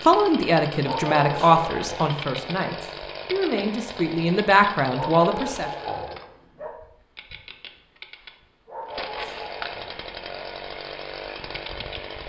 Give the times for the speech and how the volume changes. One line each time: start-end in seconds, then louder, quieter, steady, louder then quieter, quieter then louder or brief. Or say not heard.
0.1-5.7 quieter then louder.